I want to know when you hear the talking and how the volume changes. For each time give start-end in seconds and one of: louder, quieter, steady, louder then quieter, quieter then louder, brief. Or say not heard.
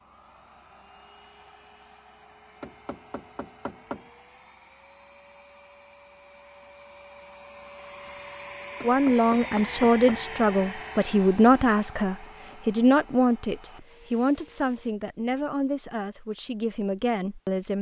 8.8-17.7 quieter.